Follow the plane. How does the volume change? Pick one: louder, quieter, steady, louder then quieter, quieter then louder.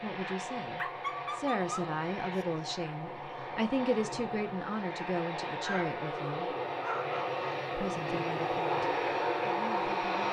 louder.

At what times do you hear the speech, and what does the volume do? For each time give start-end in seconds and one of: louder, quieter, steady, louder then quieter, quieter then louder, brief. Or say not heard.
0.0-6.5 steady
7.7-10.2 brief.